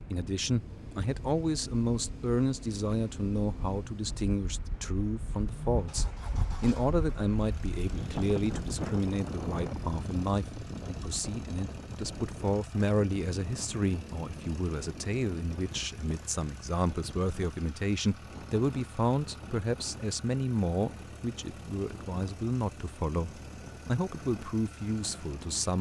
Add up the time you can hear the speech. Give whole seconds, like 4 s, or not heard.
26 s.